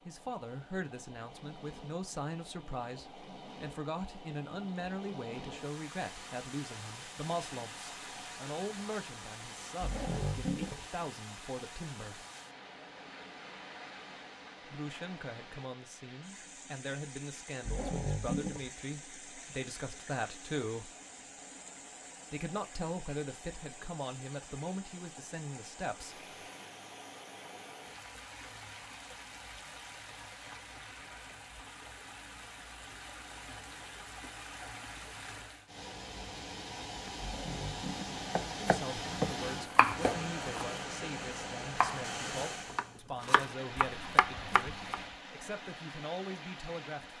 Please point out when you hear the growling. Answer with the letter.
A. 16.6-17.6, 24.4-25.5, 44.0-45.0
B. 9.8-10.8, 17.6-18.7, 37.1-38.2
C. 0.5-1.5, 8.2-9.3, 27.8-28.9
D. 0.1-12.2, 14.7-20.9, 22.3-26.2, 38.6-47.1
B.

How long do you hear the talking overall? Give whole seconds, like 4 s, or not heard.
31 s.